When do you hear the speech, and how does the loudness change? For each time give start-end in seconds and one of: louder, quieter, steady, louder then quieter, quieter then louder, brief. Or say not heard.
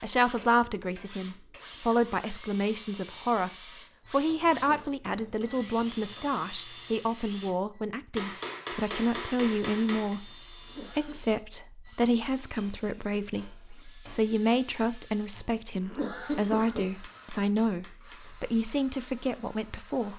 0.0-20.1 steady.